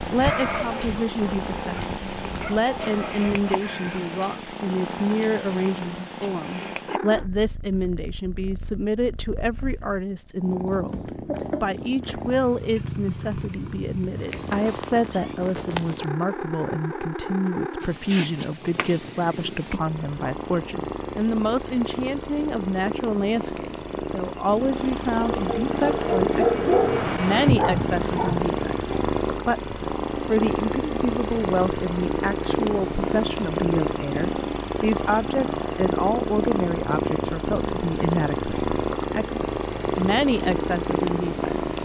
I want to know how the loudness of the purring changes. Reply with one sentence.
The volume of the purring goes up.